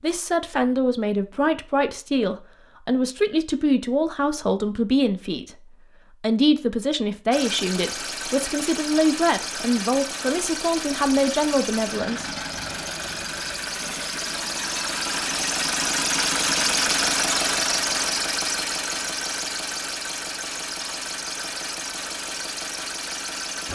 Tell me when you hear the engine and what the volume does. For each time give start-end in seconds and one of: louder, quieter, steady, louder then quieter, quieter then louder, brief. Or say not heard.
7.3-23.7 louder then quieter.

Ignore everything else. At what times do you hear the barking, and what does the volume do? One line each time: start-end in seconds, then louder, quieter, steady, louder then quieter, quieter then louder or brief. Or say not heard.
not heard.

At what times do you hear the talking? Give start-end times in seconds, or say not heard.
0.0-12.3.